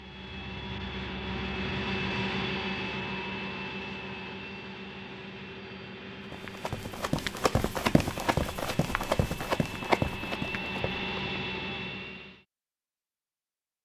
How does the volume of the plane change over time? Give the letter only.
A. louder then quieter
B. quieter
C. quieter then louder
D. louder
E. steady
C.